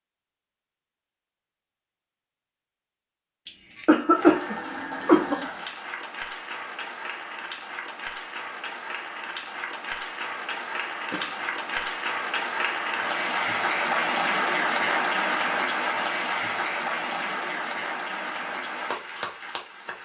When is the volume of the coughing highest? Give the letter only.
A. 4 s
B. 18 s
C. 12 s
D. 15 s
A.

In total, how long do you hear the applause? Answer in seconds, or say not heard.
16 s.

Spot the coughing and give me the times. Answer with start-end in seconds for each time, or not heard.
3.5-5.5, 11.1-11.9.